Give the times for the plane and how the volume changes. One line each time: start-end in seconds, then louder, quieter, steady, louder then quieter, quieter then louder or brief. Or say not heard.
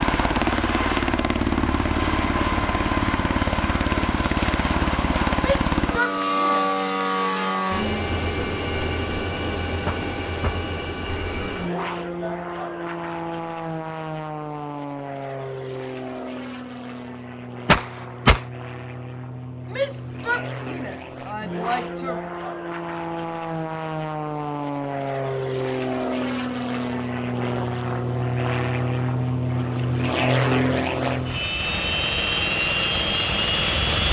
0.0-34.0 quieter then louder.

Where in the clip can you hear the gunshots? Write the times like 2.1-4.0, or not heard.
9.8-10.6, 17.6-18.4.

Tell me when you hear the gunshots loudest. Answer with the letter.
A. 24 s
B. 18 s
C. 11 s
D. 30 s
B.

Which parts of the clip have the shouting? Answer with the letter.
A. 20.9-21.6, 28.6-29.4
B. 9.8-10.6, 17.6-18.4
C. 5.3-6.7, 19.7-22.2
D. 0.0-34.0
C.